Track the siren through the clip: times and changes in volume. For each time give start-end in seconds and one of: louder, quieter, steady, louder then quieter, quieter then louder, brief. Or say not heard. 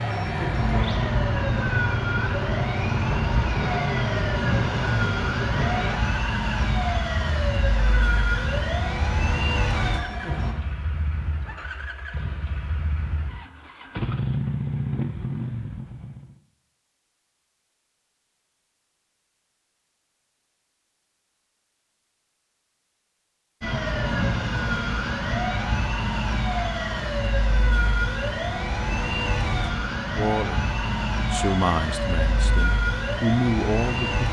0.0-10.6 steady
23.6-34.2 steady.